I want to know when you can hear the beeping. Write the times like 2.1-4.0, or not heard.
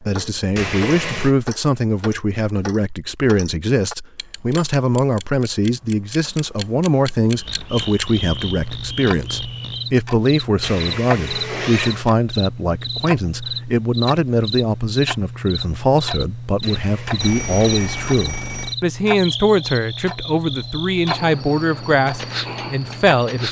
17.2-18.8.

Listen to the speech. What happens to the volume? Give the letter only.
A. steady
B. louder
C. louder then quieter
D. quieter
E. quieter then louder
A.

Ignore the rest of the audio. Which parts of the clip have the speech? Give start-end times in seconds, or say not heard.
0.0-23.4.